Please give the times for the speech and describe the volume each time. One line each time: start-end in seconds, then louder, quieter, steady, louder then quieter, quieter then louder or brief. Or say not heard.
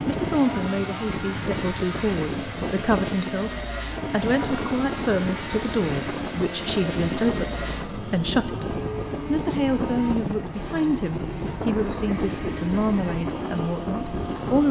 0.1-14.6 steady.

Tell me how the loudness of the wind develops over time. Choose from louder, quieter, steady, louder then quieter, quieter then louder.
steady.